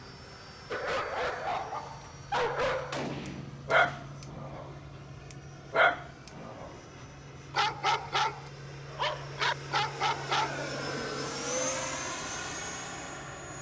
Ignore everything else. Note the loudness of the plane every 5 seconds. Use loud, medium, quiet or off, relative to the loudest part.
medium, medium, loud.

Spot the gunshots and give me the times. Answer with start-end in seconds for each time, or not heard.
2.9-4.2.